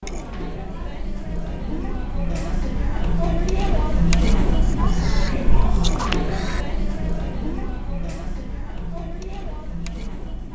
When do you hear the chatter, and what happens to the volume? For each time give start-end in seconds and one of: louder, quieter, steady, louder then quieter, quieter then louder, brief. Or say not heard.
0.0-10.5 louder then quieter.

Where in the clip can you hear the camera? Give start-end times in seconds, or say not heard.
4.6-6.7.